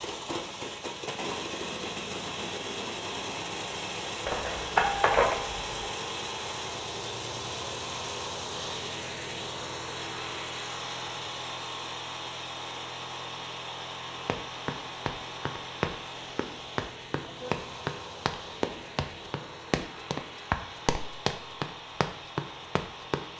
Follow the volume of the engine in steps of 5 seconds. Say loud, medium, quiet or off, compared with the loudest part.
loud, loud, loud, medium, medium.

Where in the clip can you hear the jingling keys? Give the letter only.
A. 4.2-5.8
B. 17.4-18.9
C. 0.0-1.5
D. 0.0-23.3
A.